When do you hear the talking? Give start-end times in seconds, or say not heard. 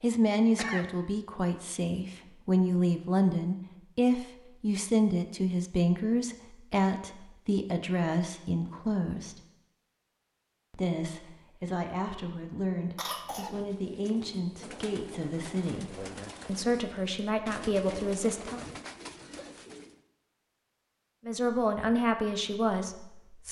0.0-9.4, 10.7-18.6, 21.2-23.4.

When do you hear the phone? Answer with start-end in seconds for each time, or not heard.
not heard.